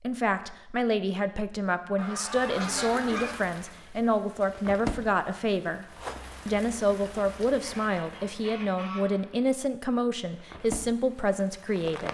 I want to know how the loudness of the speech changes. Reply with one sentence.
The volume of the speech stays about the same.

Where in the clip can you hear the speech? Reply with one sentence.
The speech can be heard from 0.0 to 5.8 s and from 6.5 to 12.0 s.